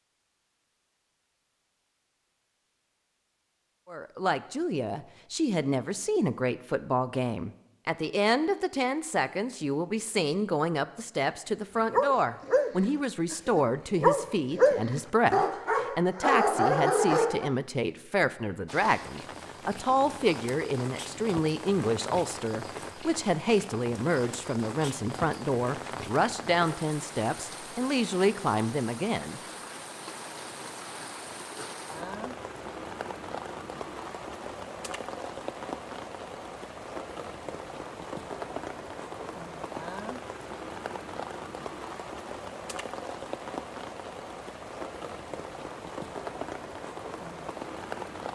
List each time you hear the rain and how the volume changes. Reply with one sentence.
You can hear the rain from 18.6 to 48.3 s, at a steady volume.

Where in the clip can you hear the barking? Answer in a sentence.
The barking can be heard from 11.9 to 17.5 s.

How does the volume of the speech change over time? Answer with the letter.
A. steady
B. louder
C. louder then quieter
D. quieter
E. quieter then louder
A.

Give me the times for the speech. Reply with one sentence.
You can hear the speech from 3.9 to 29.4 s.